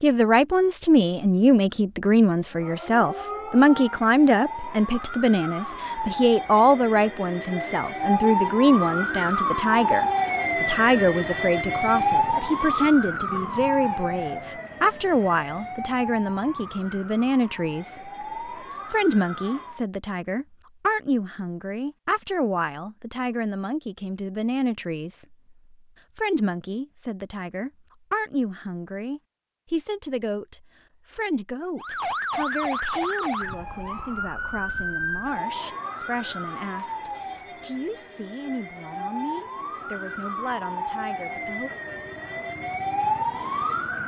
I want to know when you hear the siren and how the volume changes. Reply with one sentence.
The siren can be heard from 2.5 to 19.9 s, getting louder then quieter; and from 31.8 to 44.0 s, getting quieter then louder.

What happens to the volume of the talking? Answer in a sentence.
The loudness of the talking goes down.